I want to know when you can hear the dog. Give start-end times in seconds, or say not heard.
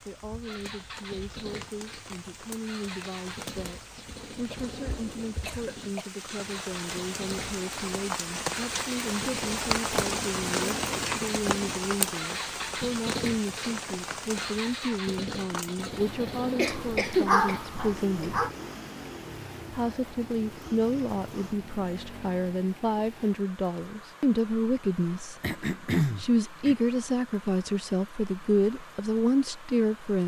16.6-18.5.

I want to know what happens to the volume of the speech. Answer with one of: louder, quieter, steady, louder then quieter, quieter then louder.
louder.